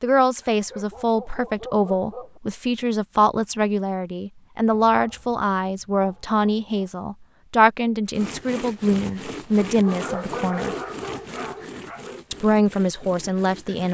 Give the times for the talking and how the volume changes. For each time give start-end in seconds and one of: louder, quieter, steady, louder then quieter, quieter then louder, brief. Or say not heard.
0.0-10.8 steady
12.3-13.8 brief.